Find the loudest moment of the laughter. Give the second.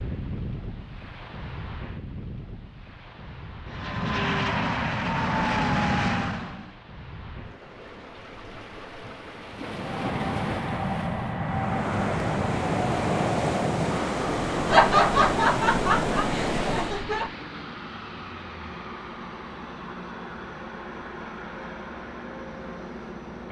15 s.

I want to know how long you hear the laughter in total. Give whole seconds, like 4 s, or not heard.
3 s.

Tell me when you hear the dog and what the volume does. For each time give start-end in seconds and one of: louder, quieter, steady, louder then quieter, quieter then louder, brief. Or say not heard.
not heard.